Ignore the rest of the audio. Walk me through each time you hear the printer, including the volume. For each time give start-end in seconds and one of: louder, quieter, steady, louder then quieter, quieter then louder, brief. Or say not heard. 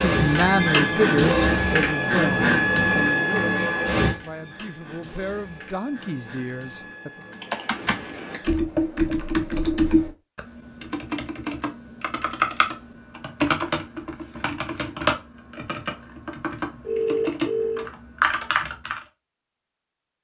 0.0-8.6 quieter.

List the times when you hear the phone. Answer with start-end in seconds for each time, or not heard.
0.3-0.9, 16.8-17.9.